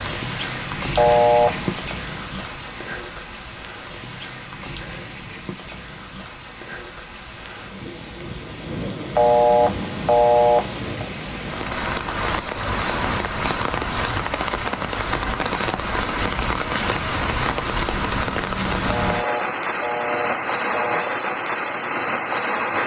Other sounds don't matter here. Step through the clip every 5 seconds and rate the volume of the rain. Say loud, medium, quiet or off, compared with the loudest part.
medium, medium, loud, loud, loud.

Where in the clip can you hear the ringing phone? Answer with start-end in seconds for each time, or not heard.
0.9-1.8, 9.2-11.1, 18.9-21.1.